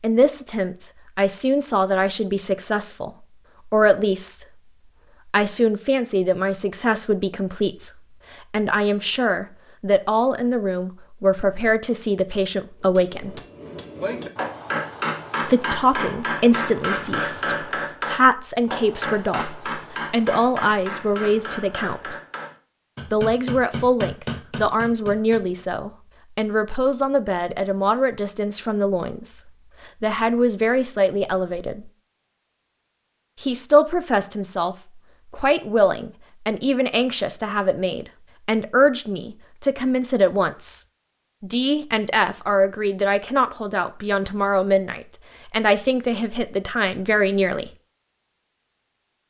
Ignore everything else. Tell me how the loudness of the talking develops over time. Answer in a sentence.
The volume of the talking stays about the same.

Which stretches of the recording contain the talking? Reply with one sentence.
You can hear the talking from 0.0 to 4.5 s, from 5.2 to 13.4 s, from 15.4 to 22.1 s, from 23.1 to 31.9 s and from 33.4 to 47.7 s.